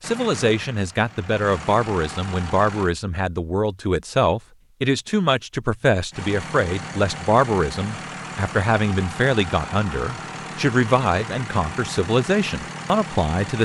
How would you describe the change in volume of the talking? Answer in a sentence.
The loudness of the talking stays about the same.